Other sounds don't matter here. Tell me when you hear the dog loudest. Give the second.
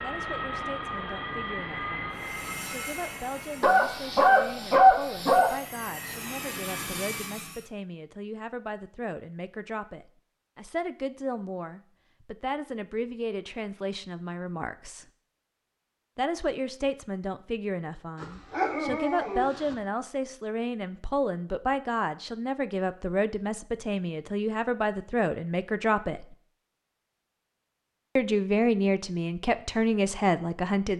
5 s.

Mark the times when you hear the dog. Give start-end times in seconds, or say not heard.
3.6-5.5, 18.2-19.8.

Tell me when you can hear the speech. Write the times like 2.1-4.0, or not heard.
0.0-15.1, 16.1-26.4, 28.1-30.9.